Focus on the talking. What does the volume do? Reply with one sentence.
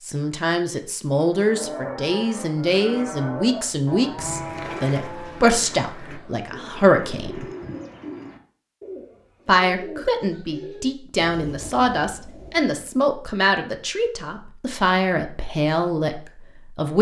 The loudness of the talking stays about the same.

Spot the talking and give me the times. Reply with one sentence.
The talking can be heard from 0.1 to 7.5 s and from 9.4 to 16.9 s.